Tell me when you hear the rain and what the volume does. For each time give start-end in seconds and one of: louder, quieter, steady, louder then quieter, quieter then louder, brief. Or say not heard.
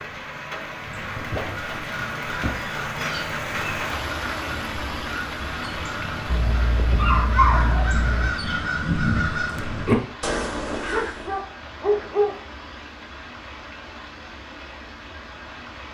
0.0-15.8 quieter.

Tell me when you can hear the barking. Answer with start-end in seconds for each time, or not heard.
1.1-2.8, 6.2-8.3, 10.9-12.4.